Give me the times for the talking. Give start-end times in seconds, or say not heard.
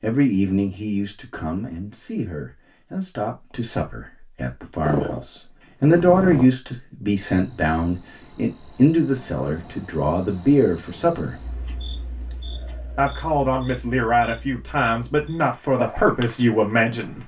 0.0-11.4, 12.9-17.2.